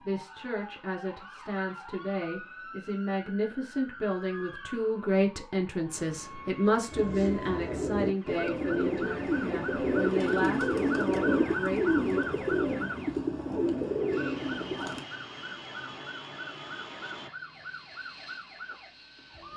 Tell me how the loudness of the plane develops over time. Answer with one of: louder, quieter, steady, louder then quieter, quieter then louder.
quieter.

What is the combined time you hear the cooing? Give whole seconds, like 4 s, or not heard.
8 s.